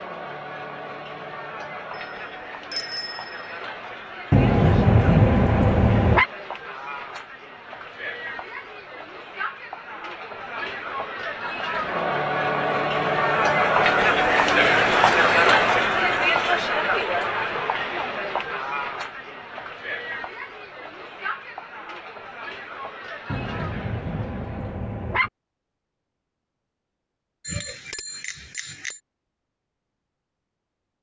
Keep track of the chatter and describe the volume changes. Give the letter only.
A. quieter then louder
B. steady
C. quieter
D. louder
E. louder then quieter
E.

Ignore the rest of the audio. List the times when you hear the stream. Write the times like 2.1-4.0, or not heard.
not heard.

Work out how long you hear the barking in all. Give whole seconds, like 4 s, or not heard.
4 s.